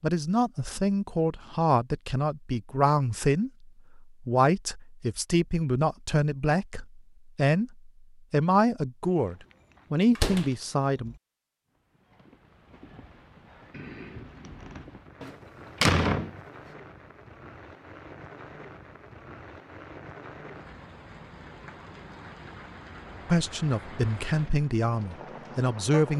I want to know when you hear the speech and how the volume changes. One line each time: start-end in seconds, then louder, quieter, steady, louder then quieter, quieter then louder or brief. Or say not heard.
0.0-11.2 steady
23.2-26.1 brief.